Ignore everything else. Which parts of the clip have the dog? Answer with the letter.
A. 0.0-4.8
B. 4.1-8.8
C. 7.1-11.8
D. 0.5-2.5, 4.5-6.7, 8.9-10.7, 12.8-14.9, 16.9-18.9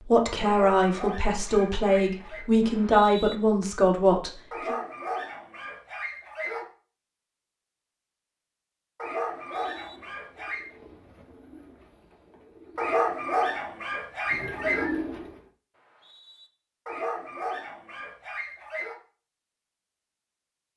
D.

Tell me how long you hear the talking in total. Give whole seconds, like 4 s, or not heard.
5 s.